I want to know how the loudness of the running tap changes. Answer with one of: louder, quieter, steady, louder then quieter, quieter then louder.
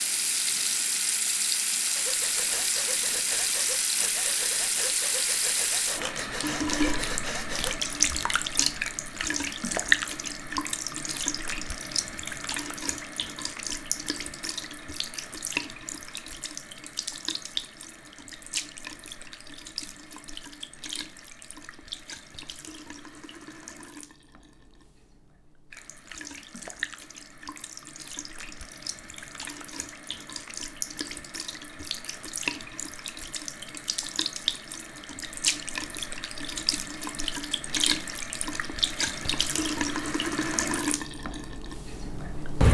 quieter then louder.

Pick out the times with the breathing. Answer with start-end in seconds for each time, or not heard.
1.9-8.2.